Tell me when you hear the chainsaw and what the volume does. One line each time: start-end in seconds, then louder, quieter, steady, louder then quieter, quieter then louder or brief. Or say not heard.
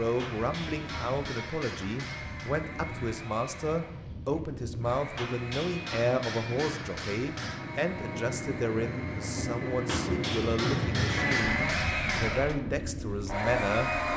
0.0-14.1 louder.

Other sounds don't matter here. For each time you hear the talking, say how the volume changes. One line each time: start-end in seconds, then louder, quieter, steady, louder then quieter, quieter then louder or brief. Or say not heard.
0.0-13.9 steady.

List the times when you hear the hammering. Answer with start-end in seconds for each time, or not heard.
0.1-2.5, 5.2-7.7, 9.8-12.6.